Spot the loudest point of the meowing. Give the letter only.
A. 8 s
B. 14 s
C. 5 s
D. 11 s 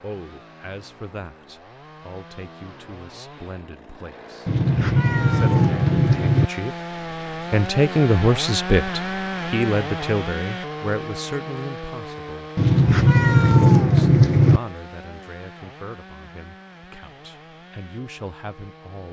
B.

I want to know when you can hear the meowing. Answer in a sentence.
The meowing can be heard from 4.5 to 6.5 s and from 12.6 to 14.6 s.